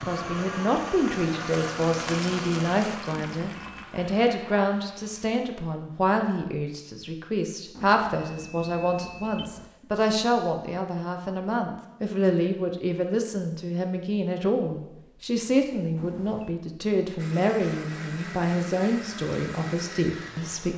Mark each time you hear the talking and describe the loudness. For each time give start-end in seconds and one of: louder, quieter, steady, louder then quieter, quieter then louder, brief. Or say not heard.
0.1-20.7 steady.